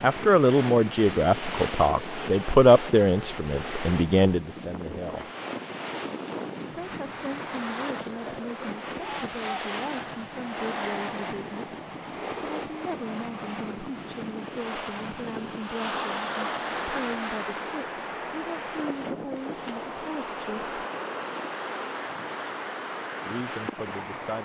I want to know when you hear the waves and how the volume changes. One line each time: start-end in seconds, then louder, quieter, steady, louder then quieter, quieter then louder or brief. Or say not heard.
0.0-24.4 steady.